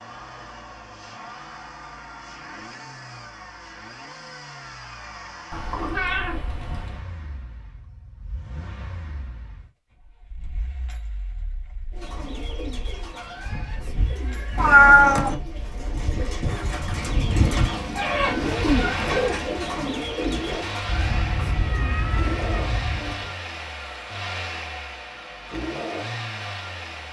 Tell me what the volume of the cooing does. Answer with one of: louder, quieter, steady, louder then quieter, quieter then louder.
louder then quieter.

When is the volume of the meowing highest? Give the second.
15 s.